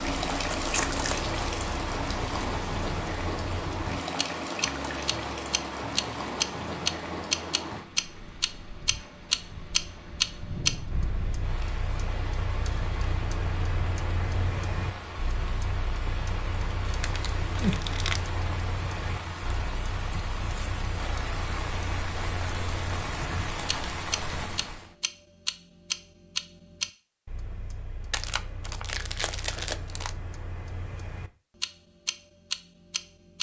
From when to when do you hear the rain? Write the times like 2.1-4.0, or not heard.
0.0-24.9.